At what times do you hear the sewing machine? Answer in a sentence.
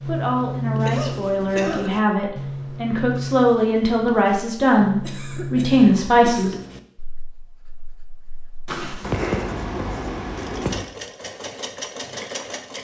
The sewing machine can be heard from 10.3 to 12.7 s.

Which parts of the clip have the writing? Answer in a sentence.
You can hear the writing from 0.0 to 10.8 s.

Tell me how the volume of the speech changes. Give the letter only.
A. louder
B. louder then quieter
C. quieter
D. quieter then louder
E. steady
A.